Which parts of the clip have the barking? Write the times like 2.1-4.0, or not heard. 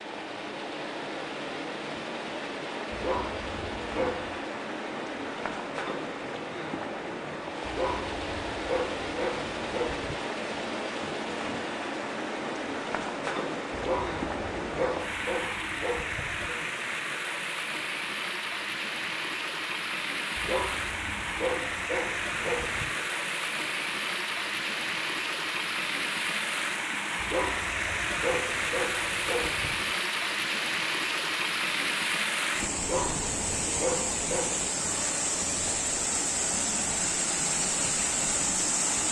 2.9-4.4, 7.7-10.2, 13.7-16.6, 20.4-22.9, 27.1-29.9, 32.8-34.7.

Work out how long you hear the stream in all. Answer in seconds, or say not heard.
39 s.